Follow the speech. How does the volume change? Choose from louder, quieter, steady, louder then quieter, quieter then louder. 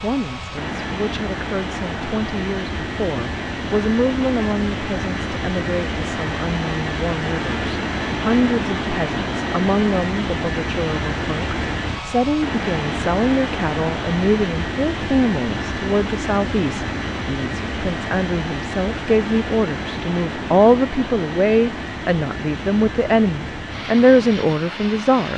louder.